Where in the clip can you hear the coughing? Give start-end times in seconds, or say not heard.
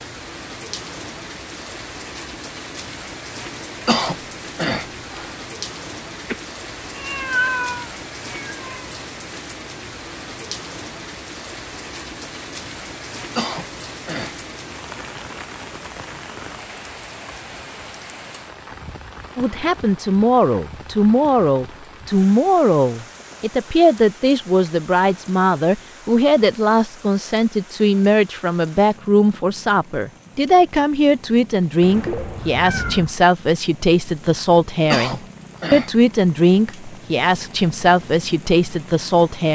3.9-5.3, 13.3-14.3, 34.9-35.9.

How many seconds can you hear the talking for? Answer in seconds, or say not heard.
20 s.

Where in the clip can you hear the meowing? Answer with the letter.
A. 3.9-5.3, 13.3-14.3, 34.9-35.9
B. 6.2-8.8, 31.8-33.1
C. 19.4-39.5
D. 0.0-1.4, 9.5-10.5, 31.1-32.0
B.